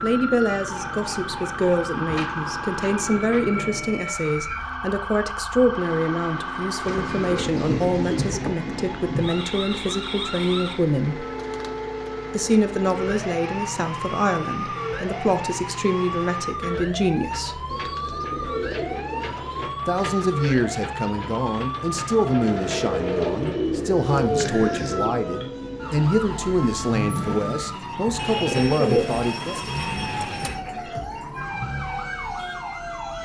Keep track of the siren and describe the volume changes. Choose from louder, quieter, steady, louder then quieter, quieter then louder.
steady.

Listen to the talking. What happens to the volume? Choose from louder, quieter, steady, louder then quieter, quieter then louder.
steady.